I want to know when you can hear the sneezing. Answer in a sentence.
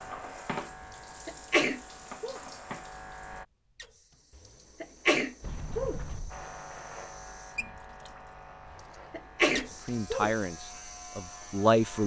You can hear the sneezing from 1.2 to 2.4 s, from 4.8 to 6.0 s and from 9.1 to 10.3 s.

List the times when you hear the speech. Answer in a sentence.
You can hear the speech from 9.8 to 12.0 s.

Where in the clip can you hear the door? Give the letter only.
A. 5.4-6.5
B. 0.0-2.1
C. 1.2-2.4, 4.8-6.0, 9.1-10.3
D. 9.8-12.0
A.